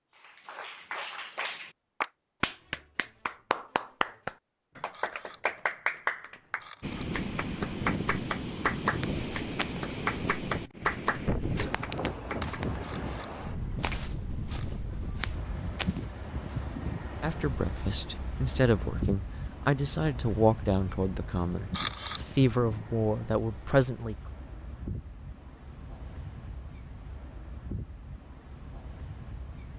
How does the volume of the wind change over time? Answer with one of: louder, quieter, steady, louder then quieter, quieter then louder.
quieter.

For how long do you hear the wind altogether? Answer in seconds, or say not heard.
23 s.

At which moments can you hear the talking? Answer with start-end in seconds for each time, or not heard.
17.2-24.1.